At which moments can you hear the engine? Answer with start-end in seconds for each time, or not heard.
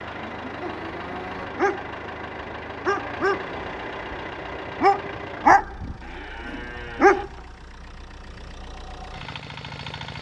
0.0-10.1.